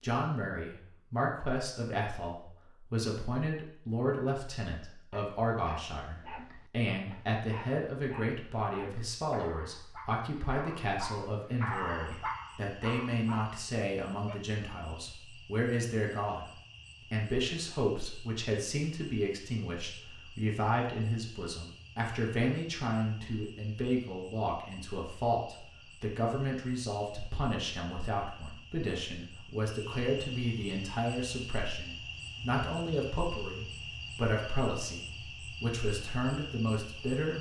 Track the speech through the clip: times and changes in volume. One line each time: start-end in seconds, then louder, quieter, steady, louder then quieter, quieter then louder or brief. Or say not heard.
0.0-16.4 steady
17.1-37.3 steady.